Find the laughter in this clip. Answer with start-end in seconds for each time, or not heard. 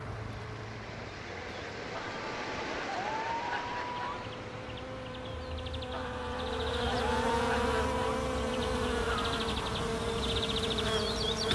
1.9-4.3, 5.9-8.2.